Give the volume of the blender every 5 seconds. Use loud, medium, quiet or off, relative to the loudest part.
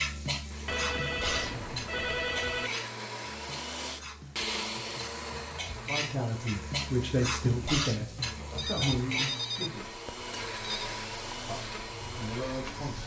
loud, medium, loud.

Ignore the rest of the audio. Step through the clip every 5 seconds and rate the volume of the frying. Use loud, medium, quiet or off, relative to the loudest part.
loud, loud, medium.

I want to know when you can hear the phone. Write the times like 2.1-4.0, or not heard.
0.7-2.7, 8.6-10.9.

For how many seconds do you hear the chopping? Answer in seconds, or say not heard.
not heard.